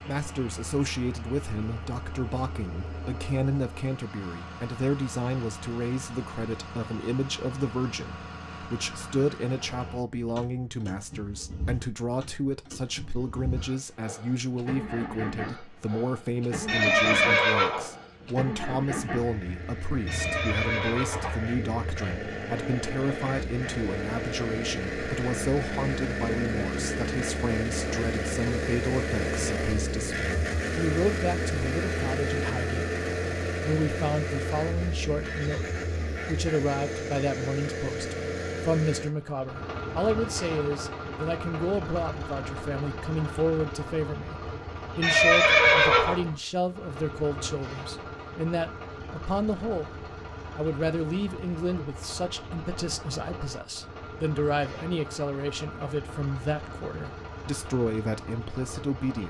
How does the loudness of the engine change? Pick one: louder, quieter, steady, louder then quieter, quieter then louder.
louder then quieter.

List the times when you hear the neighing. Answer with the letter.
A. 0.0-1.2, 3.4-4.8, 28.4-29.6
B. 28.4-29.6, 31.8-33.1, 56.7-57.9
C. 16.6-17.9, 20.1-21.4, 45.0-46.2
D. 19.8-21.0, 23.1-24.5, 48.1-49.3
C.